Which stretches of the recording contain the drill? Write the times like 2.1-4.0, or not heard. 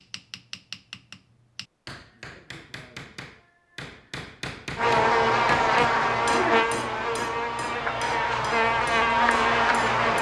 not heard.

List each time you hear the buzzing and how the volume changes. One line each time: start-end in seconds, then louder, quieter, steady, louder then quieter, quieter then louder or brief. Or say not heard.
4.8-10.1 quieter then louder.